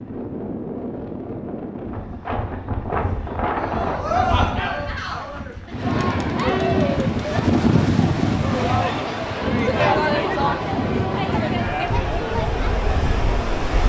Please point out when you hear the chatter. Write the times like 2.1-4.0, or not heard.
3.5-13.8.